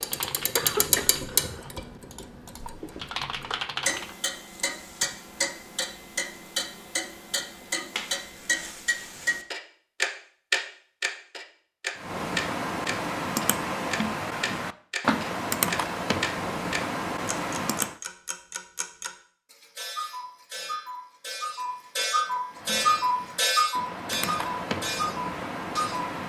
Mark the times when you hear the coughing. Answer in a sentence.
The coughing can be heard from 0.6 to 1.7 s.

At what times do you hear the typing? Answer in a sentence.
You can hear the typing from 0.0 to 4.2 s, from 11.9 to 17.9 s and from 22.5 to 26.2 s.